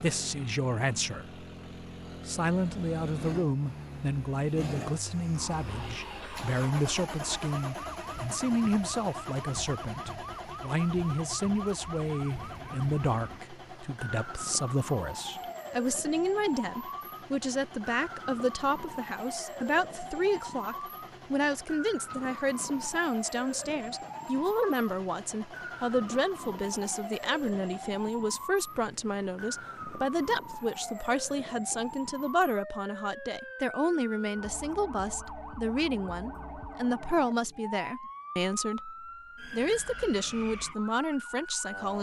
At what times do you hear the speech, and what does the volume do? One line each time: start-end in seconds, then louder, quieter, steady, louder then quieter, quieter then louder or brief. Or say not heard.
0.0-1.4 brief
2.2-41.9 steady.